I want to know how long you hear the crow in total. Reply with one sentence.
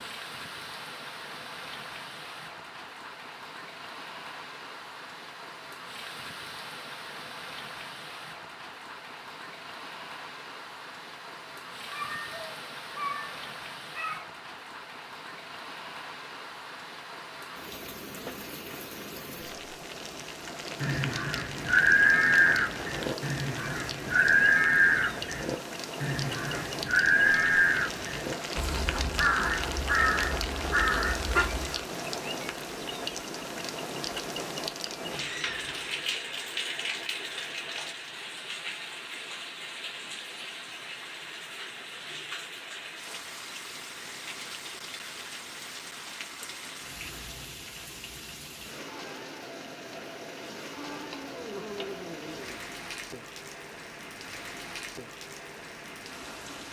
You can hear the crow for 11 seconds altogether.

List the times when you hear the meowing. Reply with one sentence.
The meowing can be heard from 11.9 to 14.2 s, from 35.0 to 36.0 s and from 50.8 to 52.6 s.